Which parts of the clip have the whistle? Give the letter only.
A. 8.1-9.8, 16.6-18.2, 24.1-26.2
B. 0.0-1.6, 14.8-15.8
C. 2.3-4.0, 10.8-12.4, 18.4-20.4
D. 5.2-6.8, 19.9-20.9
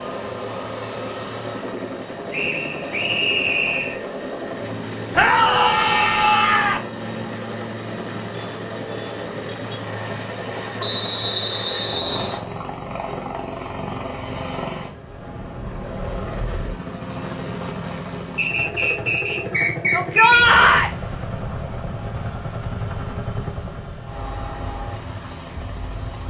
C.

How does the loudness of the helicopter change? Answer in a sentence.
The loudness of the helicopter stays about the same.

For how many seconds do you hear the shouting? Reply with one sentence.
You can hear the shouting for 3 seconds altogether.